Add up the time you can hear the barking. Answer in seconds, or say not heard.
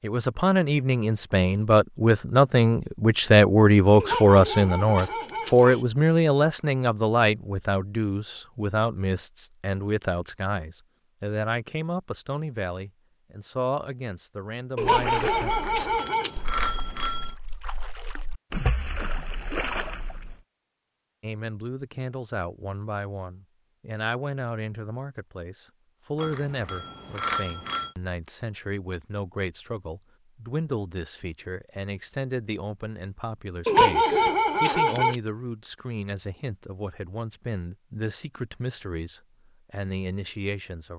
5 s.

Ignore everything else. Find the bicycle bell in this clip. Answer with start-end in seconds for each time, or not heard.
15.5-17.4, 26.2-27.9.